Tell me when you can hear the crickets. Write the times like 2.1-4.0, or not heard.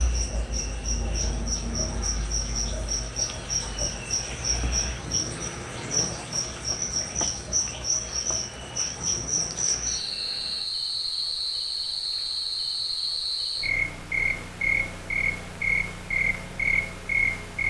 0.0-17.6.